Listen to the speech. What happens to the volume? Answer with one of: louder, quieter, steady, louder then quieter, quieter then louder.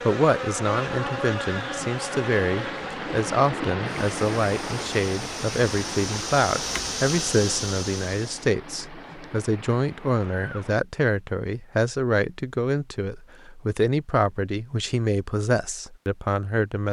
steady.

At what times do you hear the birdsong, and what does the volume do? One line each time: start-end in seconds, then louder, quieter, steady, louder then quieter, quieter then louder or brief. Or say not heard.
not heard.